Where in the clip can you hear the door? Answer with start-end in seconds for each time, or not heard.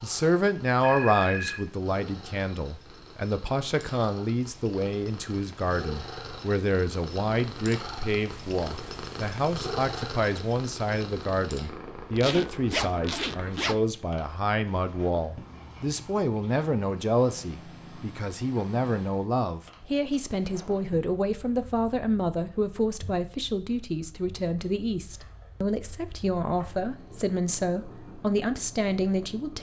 not heard.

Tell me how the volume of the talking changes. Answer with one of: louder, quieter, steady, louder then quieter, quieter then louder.
steady.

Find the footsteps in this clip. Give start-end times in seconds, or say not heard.
not heard.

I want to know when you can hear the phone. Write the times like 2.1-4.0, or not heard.
0.8-1.6.